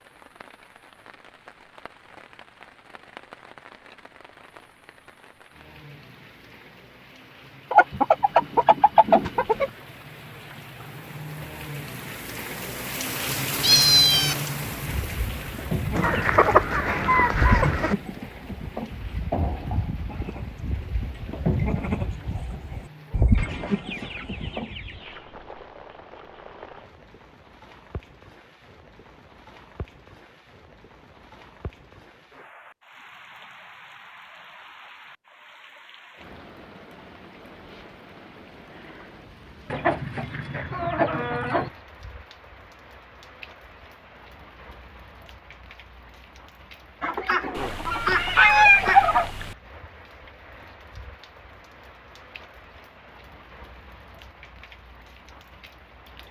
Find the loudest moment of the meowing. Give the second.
14 s.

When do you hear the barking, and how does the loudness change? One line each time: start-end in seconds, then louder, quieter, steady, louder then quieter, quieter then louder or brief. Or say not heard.
not heard.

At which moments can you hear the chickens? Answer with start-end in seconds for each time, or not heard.
7.7-9.7, 15.9-17.9, 23.4-25.2, 39.6-41.7, 47.0-49.3.